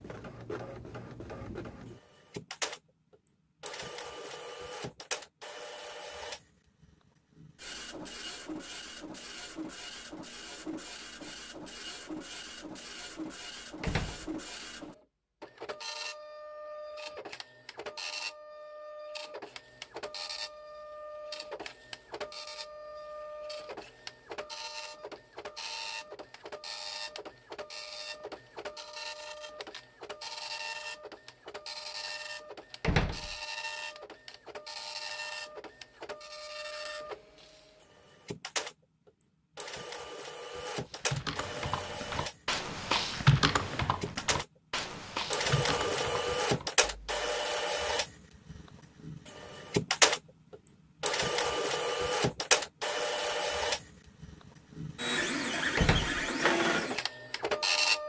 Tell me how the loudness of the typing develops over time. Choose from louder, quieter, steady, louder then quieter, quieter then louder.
louder then quieter.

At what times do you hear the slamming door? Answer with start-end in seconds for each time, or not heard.
13.8-14.3, 32.8-33.4, 55.8-56.2.